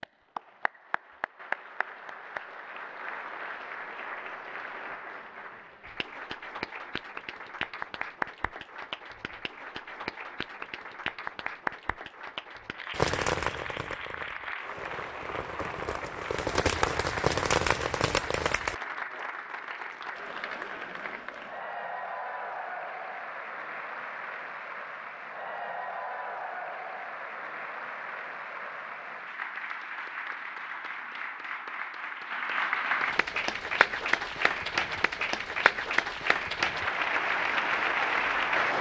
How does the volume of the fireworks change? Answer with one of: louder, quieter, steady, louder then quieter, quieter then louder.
quieter then louder.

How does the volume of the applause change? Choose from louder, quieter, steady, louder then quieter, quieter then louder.
louder.